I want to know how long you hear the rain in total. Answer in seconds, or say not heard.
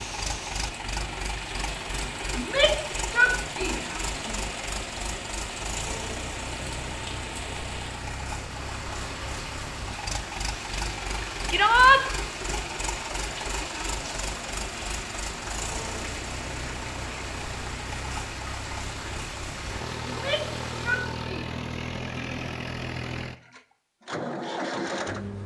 21 s.